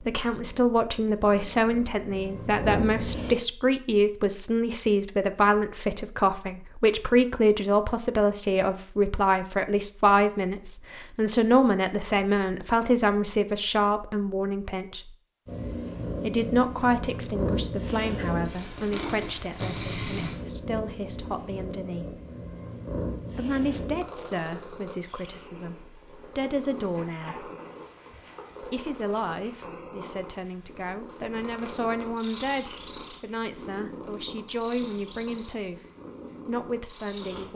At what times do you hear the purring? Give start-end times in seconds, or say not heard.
0.0-3.4, 15.4-37.5.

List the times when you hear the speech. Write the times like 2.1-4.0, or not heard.
0.0-15.2, 16.2-22.2, 23.4-27.5, 28.6-35.8, 36.5-37.5.